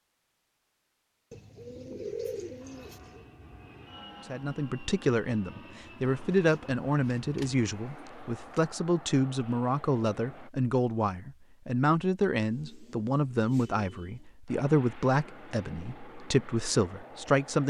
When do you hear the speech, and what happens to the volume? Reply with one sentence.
You can hear the speech from 4.3 to 17.6 s, at a steady volume.